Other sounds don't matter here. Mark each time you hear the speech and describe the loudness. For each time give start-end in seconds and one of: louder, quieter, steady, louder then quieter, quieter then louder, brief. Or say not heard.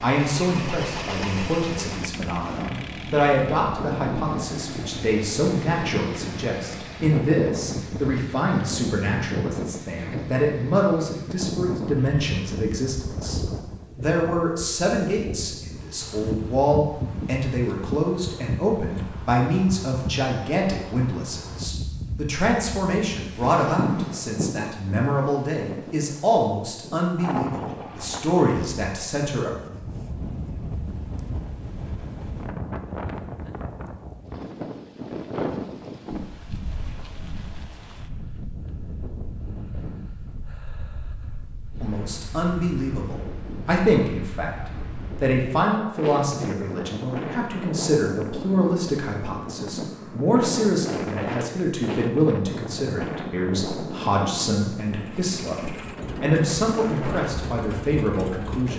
0.0-29.5 steady
41.8-44.5 brief
45.1-58.7 steady.